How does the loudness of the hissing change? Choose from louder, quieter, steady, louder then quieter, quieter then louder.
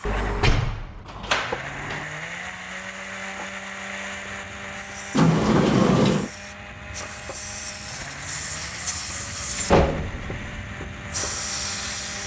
quieter then louder.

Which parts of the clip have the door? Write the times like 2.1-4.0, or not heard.
0.1-2.0, 5.1-6.3, 9.6-10.4.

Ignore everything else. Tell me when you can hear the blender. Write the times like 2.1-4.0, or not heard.
0.0-12.2.